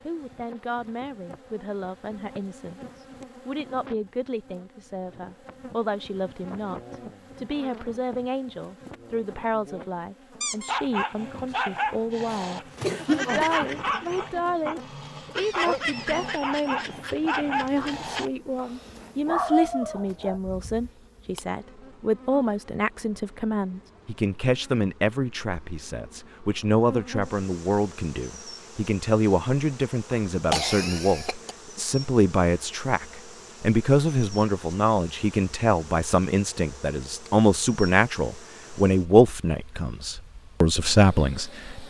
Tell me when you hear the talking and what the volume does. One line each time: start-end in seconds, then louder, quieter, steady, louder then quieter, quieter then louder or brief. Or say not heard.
0.1-41.8 louder.